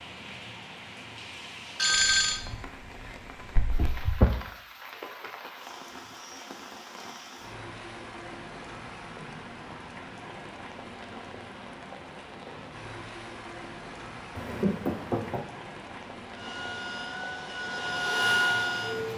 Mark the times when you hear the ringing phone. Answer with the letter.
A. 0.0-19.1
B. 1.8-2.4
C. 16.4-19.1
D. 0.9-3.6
B.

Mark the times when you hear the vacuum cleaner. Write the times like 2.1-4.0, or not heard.
16.4-19.1.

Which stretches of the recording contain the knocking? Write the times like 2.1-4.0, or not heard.
3.5-4.3, 14.3-15.4.